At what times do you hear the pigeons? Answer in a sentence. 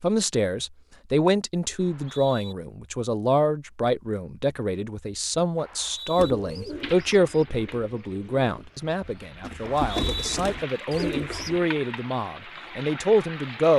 The pigeons can be heard from 6.2 to 11.6 s.